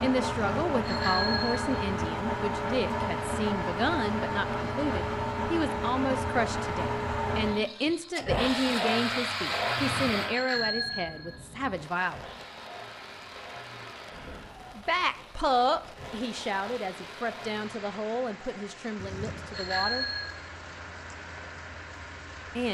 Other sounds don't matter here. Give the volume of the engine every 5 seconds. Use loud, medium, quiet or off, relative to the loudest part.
loud, loud, medium, quiet, quiet.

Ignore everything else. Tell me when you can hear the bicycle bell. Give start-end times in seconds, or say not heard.
0.3-1.6, 9.8-11.3, 18.9-20.4.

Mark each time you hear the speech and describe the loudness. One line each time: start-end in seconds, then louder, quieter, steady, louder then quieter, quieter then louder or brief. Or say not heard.
0.0-12.2 steady
14.8-20.1 quieter.